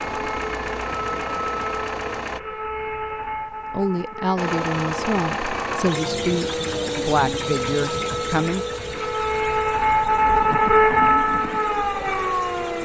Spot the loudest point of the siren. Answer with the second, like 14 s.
11 s.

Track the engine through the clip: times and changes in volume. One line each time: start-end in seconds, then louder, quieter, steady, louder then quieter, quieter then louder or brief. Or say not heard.
0.0-2.4 brief
4.3-12.8 quieter.